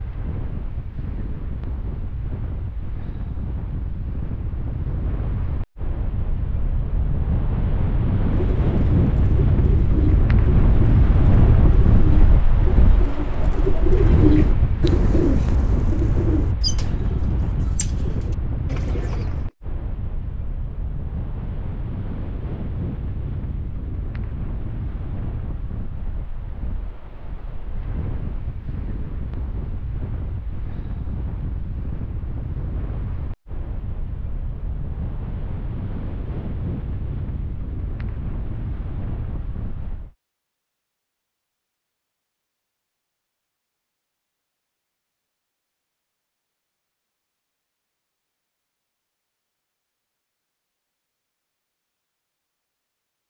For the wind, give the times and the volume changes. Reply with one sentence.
You can hear the wind from 0.0 to 40.1 s, getting louder then quieter.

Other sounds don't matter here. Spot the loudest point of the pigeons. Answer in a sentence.
The loudest moment of the pigeons is at 14 seconds.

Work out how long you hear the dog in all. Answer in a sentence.
You can't hear the dog here.